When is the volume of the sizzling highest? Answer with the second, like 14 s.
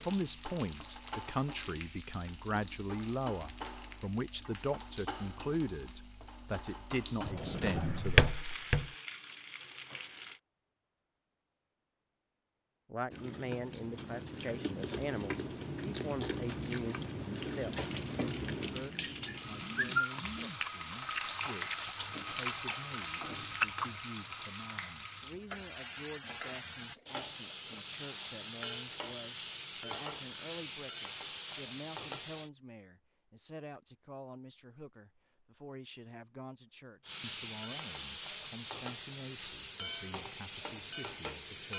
20 s.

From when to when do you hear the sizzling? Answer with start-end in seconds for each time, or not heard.
0.0-10.4, 17.8-32.5, 37.0-41.7.